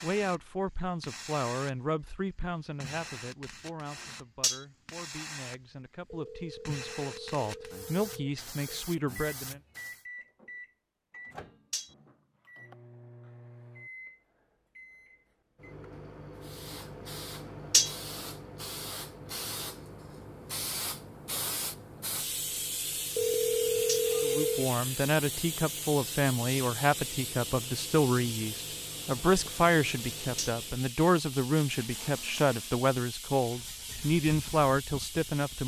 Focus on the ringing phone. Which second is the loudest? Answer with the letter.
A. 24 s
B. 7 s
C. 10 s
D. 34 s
A.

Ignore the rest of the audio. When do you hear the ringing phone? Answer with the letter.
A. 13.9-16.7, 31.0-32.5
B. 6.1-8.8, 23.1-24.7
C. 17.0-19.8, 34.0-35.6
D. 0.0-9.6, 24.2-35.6
B.